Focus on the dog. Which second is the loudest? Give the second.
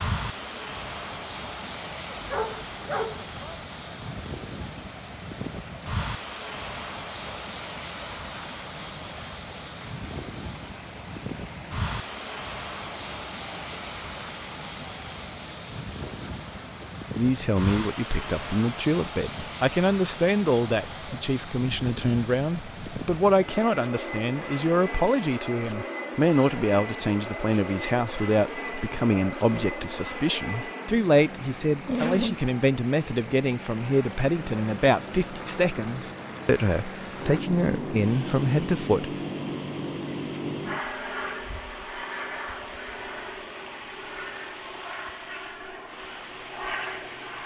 32 s.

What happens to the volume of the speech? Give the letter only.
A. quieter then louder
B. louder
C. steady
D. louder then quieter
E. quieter
C.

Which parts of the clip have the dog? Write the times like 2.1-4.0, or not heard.
2.2-3.6, 31.9-32.5.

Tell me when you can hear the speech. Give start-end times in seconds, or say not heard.
17.1-39.1.